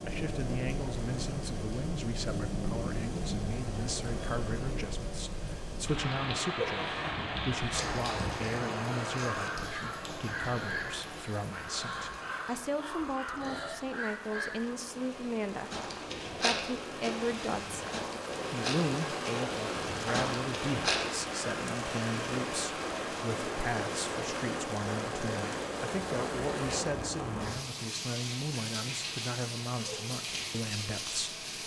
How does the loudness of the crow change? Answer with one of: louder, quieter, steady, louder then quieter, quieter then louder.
steady.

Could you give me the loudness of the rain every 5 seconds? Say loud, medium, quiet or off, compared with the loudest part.
loud, loud, medium, loud, loud, loud, loud.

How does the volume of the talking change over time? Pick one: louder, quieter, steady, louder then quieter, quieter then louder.
steady.